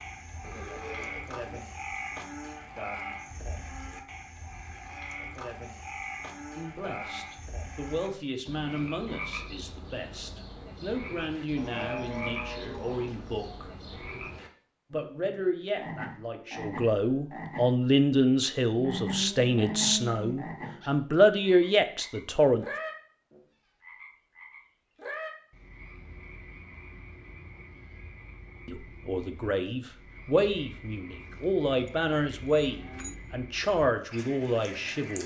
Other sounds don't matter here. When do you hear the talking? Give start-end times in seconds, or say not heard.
6.5-13.7, 14.9-22.6, 28.6-35.2.